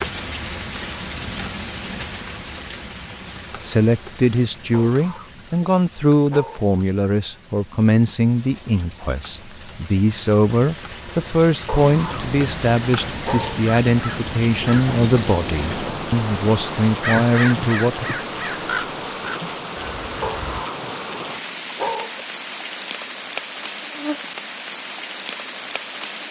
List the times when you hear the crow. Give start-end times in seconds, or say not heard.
11.8-20.6.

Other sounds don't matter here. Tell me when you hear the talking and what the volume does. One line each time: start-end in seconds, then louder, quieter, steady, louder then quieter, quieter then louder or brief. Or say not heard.
3.6-18.1 steady.